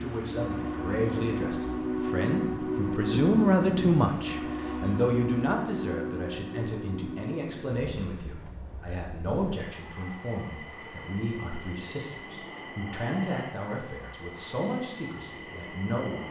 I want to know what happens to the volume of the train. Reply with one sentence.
The volume of the train goes down.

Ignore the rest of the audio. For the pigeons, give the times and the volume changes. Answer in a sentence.
You can't hear the pigeons here.